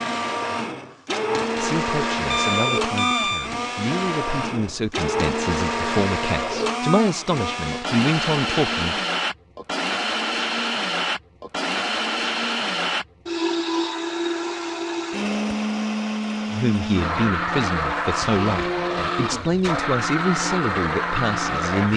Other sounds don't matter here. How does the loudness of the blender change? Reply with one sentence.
The volume of the blender stays about the same.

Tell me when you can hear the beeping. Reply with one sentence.
You can hear the beeping from 2.3 to 3.5 s.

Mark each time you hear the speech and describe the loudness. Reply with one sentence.
The speech can be heard from 1.6 to 9.0 s, getting louder; and from 16.5 to 21.9 s, at a steady volume.